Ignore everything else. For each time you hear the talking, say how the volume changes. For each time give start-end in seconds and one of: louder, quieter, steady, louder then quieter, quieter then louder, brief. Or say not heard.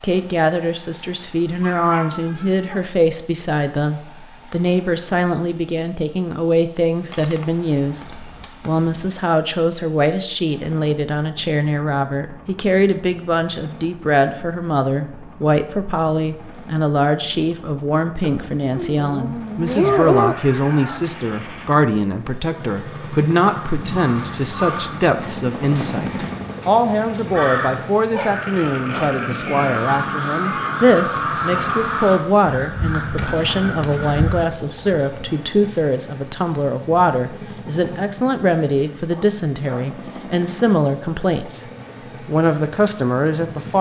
0.0-41.6 steady
42.2-43.7 brief.